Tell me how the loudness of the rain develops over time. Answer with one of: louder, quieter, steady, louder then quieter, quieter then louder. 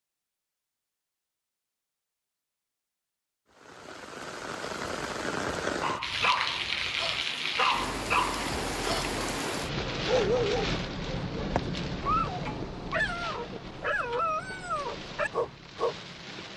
quieter.